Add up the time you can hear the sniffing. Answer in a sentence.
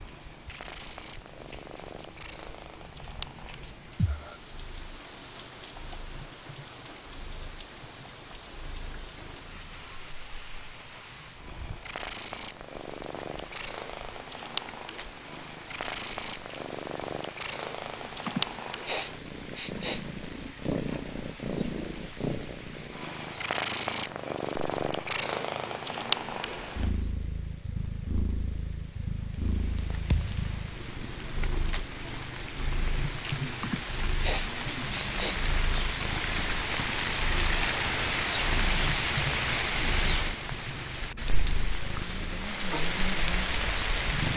You can hear the sniffing for 4 seconds altogether.